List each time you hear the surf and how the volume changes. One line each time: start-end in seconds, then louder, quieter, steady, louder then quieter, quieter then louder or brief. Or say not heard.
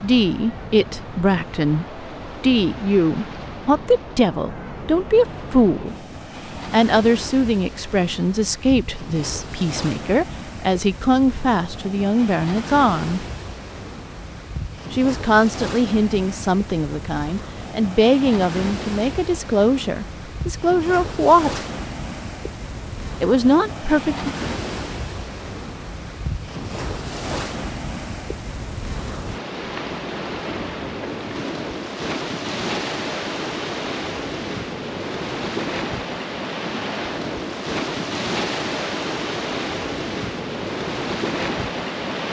0.0-42.2 louder.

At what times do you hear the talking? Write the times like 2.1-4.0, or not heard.
0.0-6.0, 6.7-13.2, 14.9-21.6, 23.2-24.3.